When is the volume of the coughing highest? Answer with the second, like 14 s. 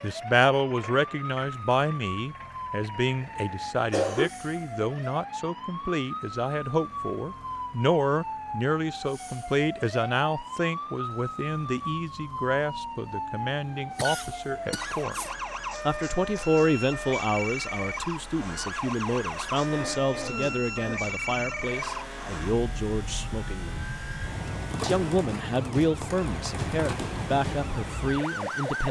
4 s.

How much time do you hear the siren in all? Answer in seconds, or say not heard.
29 s.